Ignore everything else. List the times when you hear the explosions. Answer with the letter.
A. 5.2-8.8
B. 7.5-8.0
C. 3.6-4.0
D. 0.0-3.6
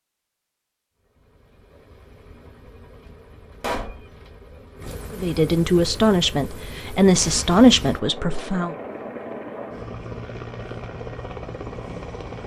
C.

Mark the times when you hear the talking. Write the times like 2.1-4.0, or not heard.
5.2-8.8.